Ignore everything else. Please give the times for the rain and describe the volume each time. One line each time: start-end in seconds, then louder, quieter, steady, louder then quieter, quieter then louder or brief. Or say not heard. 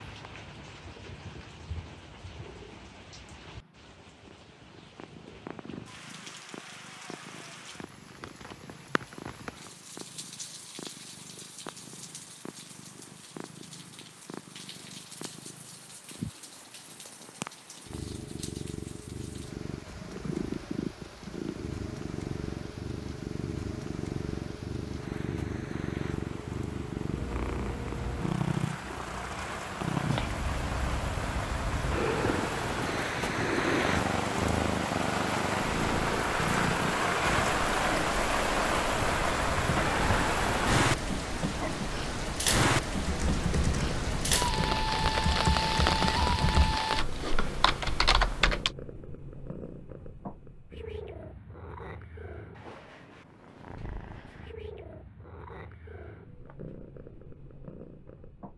0.0-47.0 louder.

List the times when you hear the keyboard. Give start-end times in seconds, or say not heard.
43.0-48.7.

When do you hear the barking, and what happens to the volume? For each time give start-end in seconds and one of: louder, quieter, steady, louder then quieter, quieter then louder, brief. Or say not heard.
not heard.